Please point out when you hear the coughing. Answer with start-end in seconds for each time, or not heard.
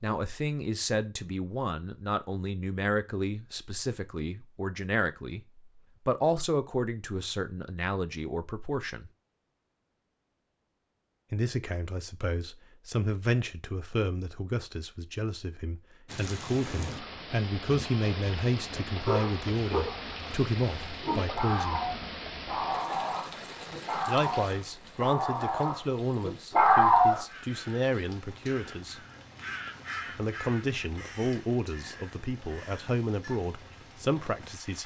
not heard.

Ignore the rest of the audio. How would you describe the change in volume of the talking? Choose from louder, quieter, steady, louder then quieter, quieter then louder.
steady.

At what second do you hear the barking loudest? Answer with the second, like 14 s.
27 s.